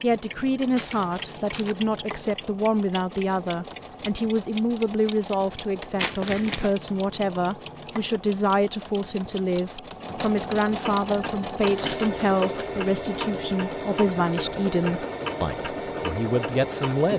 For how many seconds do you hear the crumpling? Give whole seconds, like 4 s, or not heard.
3 s.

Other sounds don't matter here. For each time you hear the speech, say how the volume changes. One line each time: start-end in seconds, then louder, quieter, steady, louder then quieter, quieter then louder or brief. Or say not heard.
0.0-17.1 steady.